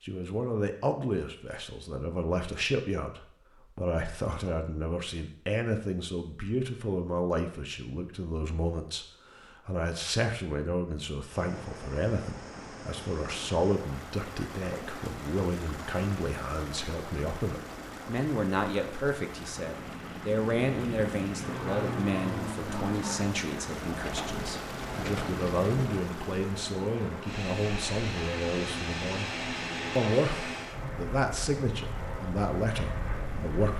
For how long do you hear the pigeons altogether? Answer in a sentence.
The pigeons can be heard for 2 seconds in total.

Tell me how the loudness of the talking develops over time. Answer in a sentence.
The loudness of the talking stays about the same.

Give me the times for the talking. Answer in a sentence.
You can hear the talking from 0.0 to 29.4 s and from 29.9 to 33.7 s.